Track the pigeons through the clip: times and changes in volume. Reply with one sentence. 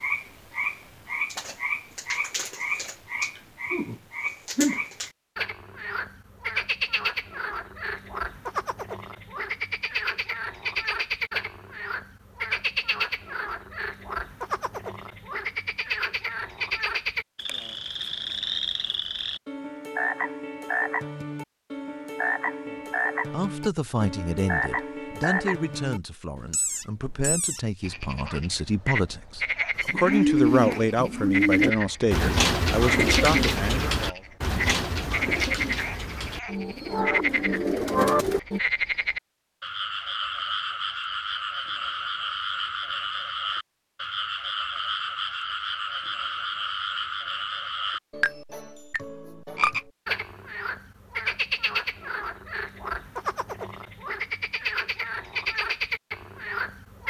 You can hear the pigeons from 29.8 to 38.6 s, getting quieter then louder.